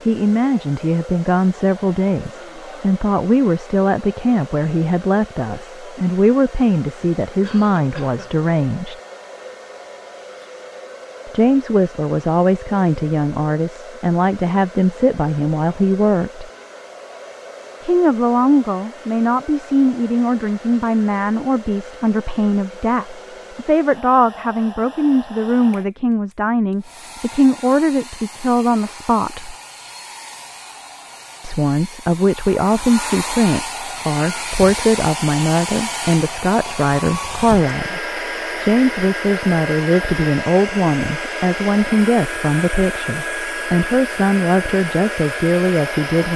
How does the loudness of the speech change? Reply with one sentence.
The volume of the speech stays about the same.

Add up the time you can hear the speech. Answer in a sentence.
The speech can be heard for 41 seconds in total.